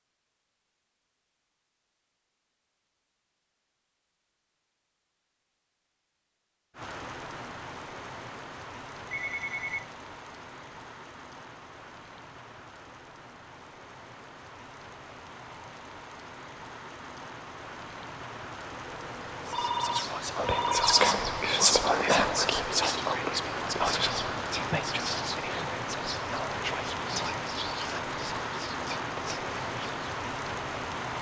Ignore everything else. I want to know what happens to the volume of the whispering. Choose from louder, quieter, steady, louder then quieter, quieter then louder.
quieter.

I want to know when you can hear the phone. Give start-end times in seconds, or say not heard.
9.1-9.8, 18.9-21.1.